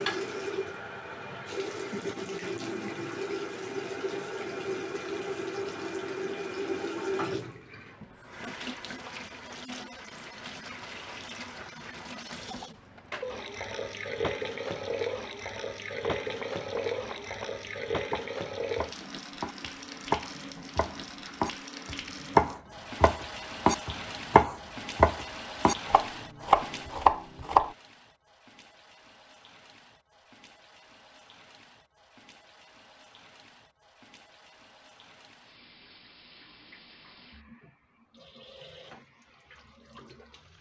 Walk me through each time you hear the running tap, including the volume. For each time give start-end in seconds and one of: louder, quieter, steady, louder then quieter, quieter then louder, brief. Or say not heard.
0.0-40.5 quieter.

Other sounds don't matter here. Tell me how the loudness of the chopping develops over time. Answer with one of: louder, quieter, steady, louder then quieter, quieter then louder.
louder.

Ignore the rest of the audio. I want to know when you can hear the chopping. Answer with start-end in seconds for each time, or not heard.
16.2-27.7.